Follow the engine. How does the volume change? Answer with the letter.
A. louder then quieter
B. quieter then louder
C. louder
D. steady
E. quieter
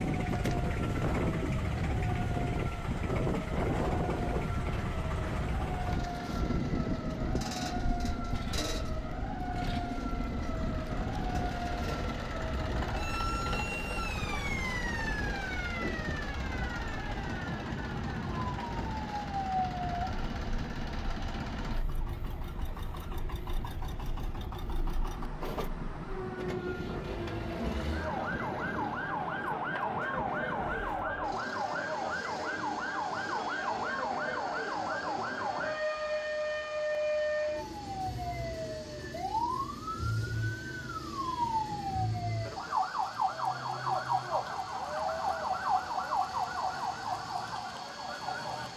E.